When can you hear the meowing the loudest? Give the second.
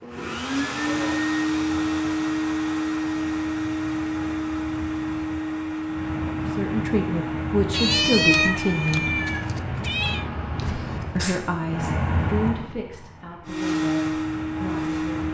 8 s.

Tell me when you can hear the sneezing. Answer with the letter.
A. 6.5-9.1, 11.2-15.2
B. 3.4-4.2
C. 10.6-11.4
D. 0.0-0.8
C.